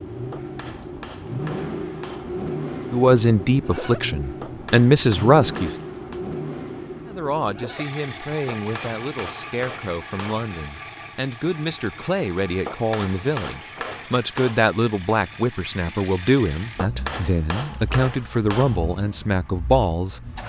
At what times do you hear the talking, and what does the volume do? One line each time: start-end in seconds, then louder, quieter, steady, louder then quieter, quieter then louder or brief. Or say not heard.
2.9-5.7 brief
7.0-20.2 louder.